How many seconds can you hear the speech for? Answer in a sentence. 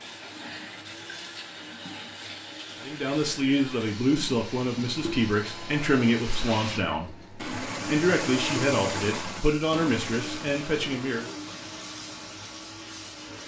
You can hear the speech for 8 seconds altogether.